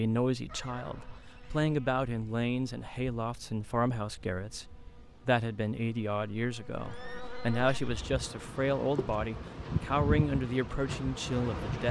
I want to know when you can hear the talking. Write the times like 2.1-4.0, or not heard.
0.0-11.8.